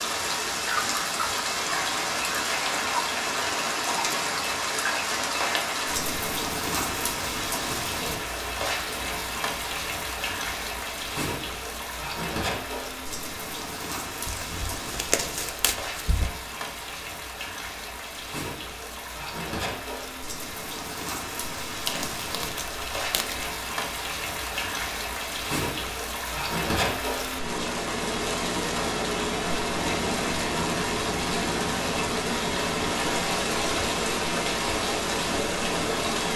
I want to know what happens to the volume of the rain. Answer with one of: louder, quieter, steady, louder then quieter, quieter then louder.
quieter then louder.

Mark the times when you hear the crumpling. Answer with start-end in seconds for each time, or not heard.
14.2-16.3, 21.6-23.5.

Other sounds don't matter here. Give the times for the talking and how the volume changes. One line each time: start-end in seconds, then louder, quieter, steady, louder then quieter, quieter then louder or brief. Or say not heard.
not heard.